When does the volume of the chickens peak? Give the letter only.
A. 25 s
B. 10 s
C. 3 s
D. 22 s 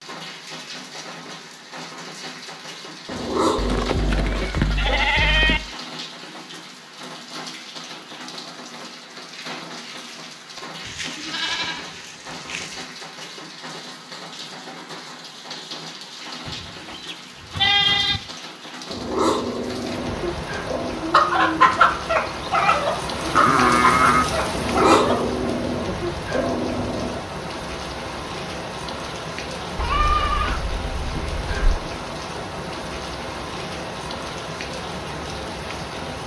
D.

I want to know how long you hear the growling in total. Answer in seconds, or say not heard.
7 s.